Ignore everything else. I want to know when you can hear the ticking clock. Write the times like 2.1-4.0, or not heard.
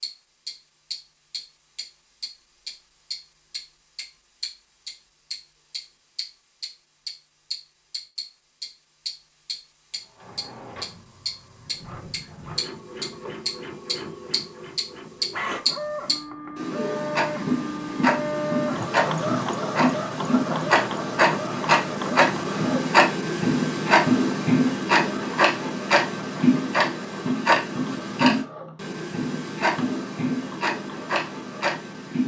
0.0-32.2.